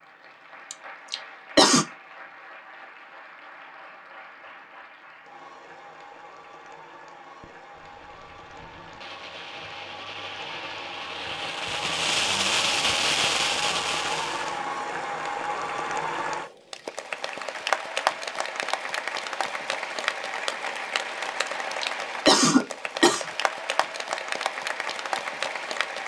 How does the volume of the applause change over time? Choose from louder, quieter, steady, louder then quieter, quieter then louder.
louder.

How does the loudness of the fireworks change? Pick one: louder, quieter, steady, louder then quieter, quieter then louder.
louder.